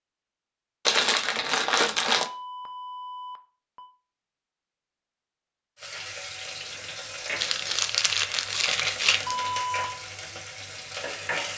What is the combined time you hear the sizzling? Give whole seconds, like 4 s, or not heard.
6 s.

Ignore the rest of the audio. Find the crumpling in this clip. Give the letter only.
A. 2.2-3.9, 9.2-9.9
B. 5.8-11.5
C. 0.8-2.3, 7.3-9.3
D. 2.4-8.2
C.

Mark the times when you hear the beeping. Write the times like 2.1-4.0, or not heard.
2.2-3.9, 9.2-9.9.